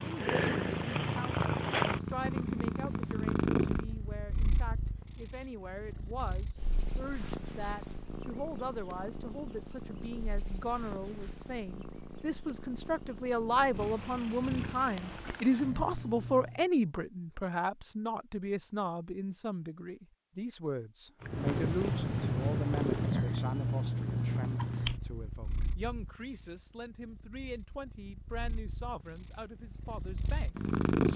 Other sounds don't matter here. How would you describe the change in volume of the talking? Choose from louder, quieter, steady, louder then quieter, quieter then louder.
louder then quieter.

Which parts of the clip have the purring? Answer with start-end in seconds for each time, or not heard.
0.0-16.6, 21.2-31.1.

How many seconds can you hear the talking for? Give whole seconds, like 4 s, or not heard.
31 s.